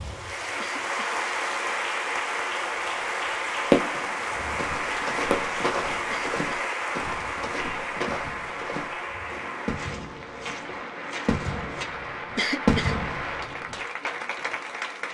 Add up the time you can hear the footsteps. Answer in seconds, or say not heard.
7 s.